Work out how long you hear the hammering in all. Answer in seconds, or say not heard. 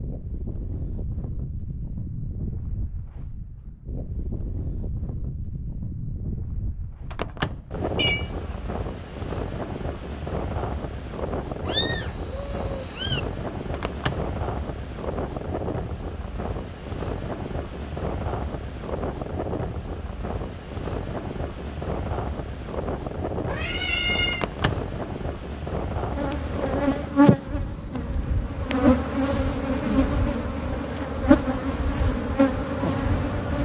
not heard.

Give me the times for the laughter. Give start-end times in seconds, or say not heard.
not heard.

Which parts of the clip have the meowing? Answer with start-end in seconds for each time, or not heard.
8.0-8.5, 11.7-13.2, 23.4-24.4.